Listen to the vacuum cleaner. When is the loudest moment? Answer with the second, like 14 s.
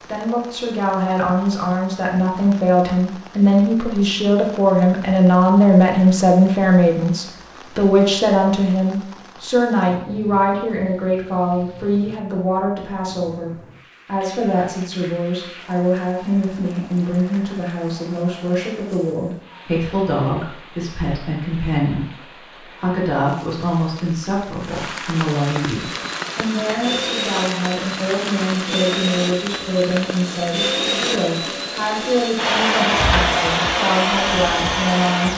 33 s.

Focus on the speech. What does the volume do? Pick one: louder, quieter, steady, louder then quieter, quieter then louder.
quieter.